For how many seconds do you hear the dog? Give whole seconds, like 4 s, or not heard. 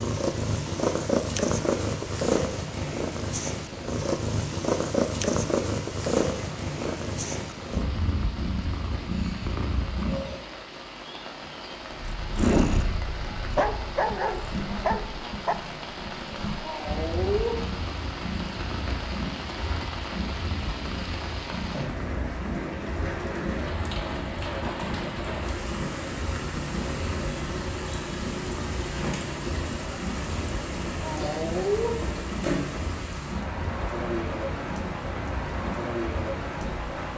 2 s.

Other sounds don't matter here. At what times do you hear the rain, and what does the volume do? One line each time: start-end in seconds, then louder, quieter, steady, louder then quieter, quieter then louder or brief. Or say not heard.
0.0-37.1 louder.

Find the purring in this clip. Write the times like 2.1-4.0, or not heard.
0.0-10.4, 11.8-36.9.